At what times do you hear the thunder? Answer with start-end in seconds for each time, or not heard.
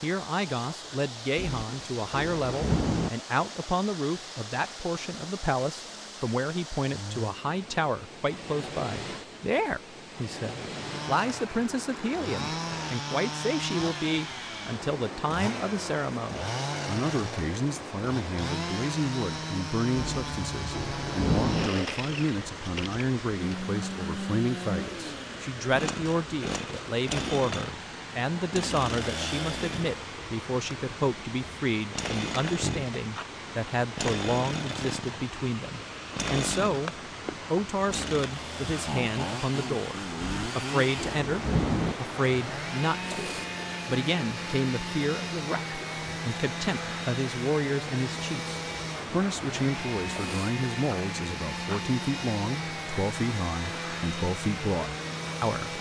1.4-3.1, 19.9-21.7, 40.2-42.0.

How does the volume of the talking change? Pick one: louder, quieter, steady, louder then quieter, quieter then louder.
steady.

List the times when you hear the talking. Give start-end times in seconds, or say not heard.
0.0-36.9, 37.5-55.7.